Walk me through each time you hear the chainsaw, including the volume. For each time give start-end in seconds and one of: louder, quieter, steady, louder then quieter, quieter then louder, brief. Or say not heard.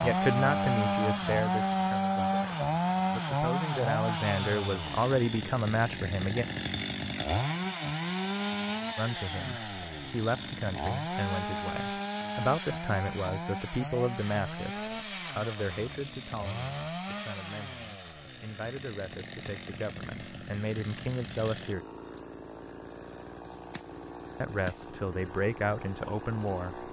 0.0-26.8 quieter.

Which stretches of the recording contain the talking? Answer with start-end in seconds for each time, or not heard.
0.0-6.5, 8.9-21.9, 24.4-26.8.